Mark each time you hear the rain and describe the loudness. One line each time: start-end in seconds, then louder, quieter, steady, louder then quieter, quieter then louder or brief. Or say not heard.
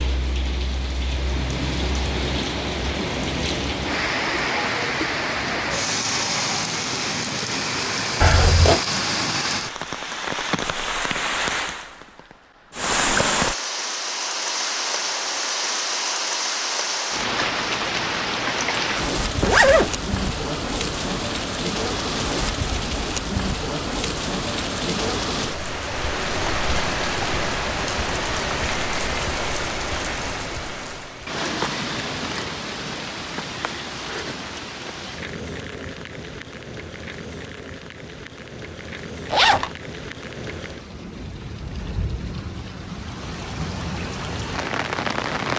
0.0-45.5 quieter.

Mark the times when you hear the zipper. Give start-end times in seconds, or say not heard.
8.2-8.8, 19.4-19.9, 39.3-39.7.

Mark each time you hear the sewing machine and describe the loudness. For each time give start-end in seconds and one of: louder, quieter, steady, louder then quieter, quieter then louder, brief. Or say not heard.
not heard.